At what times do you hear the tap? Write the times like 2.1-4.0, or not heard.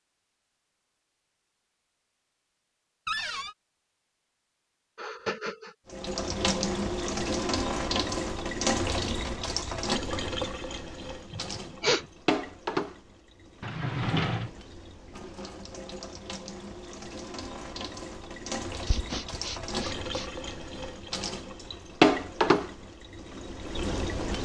5.8-24.4.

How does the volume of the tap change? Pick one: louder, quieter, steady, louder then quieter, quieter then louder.
quieter then louder.